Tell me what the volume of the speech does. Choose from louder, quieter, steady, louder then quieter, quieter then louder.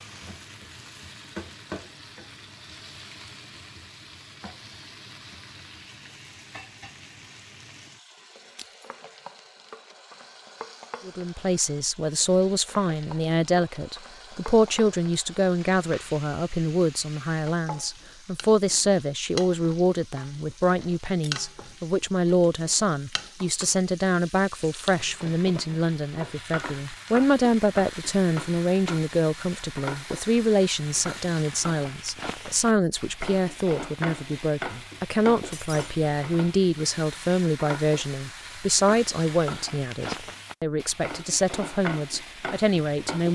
steady.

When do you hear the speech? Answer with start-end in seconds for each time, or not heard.
11.1-43.3.